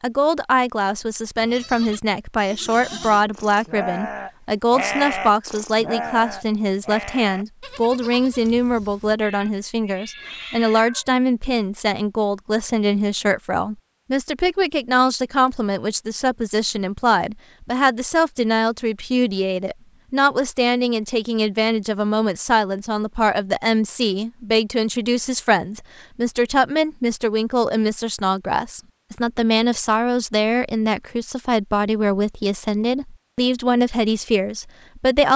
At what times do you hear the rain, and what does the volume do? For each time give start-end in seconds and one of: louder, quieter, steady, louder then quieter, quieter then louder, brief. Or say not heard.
not heard.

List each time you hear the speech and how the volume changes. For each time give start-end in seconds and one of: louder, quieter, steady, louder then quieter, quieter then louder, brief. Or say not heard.
0.0-35.3 steady.